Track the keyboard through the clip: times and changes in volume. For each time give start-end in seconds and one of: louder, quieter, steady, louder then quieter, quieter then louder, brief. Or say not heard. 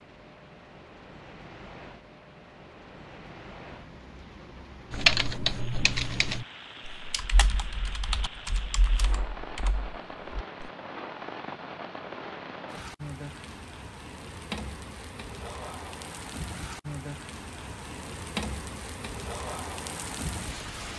4.9-10.7 quieter.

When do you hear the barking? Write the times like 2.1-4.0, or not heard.
not heard.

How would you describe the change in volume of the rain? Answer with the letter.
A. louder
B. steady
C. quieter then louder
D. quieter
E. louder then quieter
A.